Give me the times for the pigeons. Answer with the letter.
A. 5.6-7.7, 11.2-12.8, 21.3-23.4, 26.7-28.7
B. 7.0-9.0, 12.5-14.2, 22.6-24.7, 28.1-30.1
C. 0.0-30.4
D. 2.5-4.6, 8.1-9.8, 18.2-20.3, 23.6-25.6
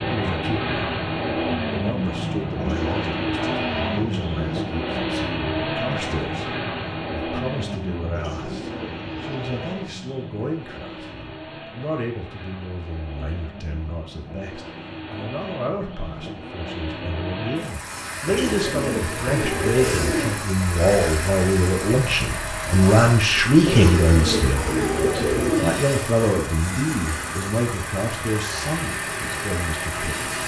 D.